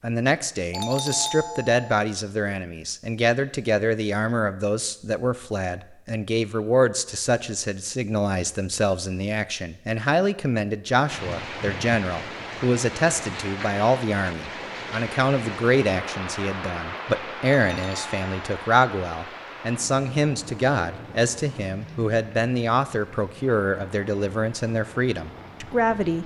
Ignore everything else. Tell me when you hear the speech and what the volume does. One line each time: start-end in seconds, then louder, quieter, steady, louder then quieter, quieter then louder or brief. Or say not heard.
0.0-26.2 steady.